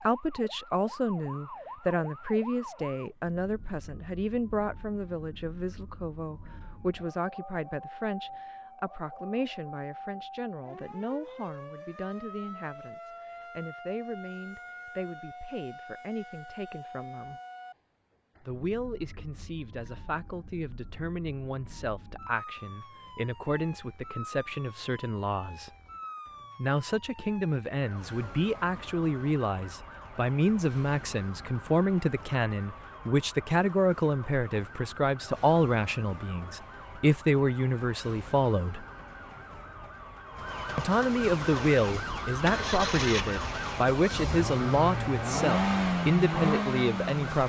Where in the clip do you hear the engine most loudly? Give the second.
46 s.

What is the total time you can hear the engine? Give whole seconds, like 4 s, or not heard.
6 s.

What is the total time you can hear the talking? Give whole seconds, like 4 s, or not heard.
44 s.